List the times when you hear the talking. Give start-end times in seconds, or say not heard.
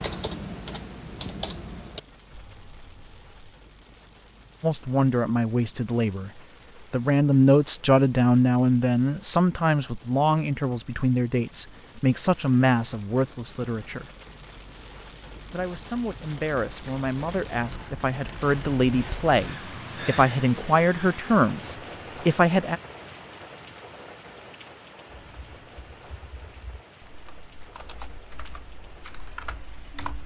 4.6-6.3, 6.9-14.1, 15.5-22.8.